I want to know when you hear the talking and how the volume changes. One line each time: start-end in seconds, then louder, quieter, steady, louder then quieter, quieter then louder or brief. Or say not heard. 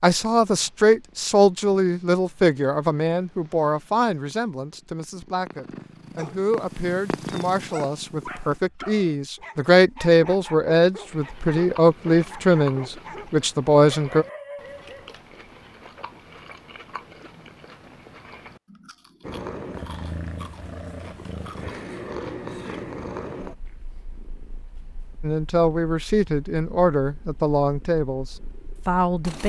0.0-14.2 quieter then louder
25.2-29.4 steady.